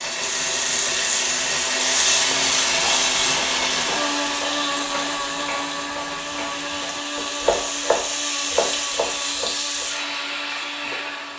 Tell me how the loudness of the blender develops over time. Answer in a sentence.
The loudness of the blender goes down.